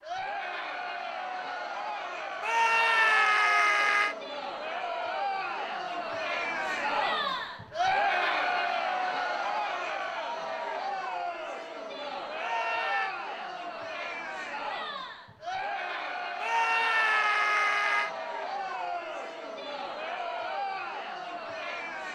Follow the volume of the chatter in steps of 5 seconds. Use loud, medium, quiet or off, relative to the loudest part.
medium, loud, medium, medium, medium.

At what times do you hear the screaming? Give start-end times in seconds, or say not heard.
2.4-4.2, 12.3-13.2, 16.4-18.1.